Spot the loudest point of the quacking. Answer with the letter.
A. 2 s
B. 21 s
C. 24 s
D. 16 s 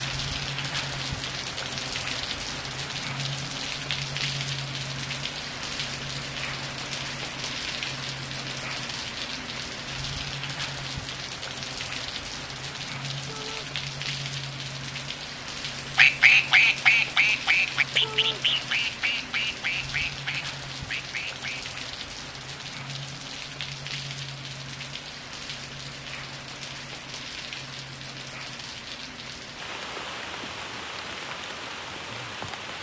D.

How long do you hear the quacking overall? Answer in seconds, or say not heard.
6 s.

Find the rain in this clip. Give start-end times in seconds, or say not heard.
0.0-32.7.